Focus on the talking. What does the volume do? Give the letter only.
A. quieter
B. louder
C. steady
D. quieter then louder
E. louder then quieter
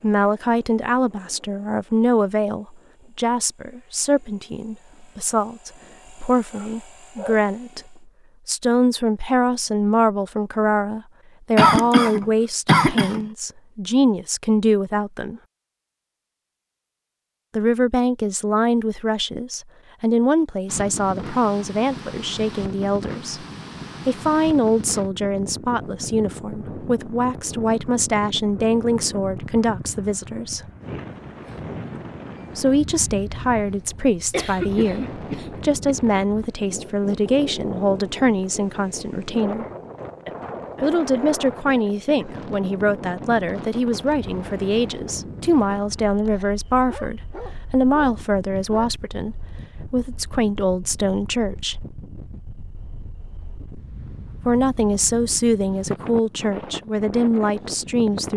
C.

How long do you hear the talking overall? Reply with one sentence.
The talking can be heard for 50 seconds in total.